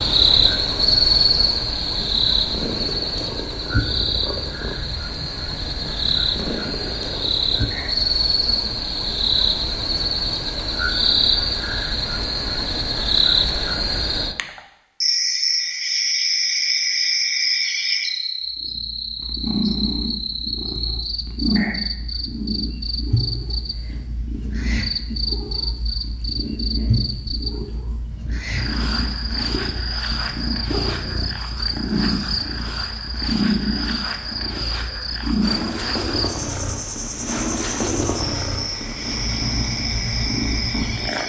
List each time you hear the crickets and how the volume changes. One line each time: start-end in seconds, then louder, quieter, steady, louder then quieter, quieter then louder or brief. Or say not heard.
0.0-41.2 quieter.